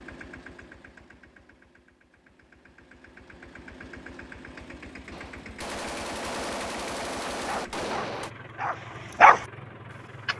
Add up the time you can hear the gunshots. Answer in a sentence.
You can hear the gunshots for 3 seconds altogether.